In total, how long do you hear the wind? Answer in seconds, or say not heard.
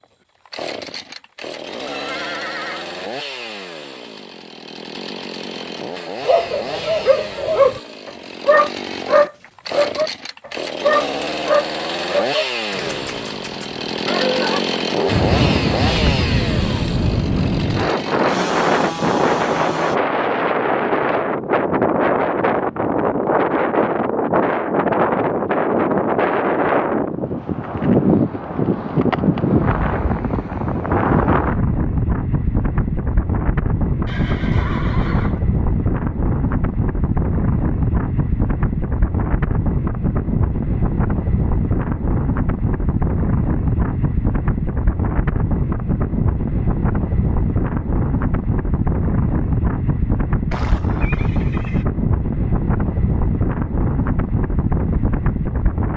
41 s.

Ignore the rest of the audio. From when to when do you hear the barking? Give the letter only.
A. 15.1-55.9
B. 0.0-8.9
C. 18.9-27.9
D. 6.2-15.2
D.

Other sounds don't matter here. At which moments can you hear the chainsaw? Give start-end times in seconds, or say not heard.
0.0-20.0.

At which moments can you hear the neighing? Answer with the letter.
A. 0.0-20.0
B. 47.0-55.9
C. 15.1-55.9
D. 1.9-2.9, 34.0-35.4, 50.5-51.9
D.